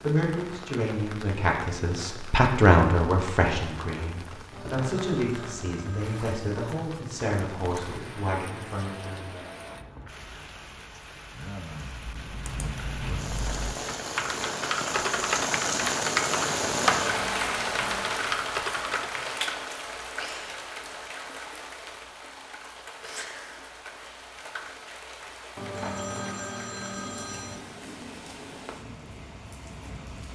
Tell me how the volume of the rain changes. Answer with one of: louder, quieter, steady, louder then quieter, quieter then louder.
louder then quieter.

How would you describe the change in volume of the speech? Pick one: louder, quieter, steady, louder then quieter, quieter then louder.
louder then quieter.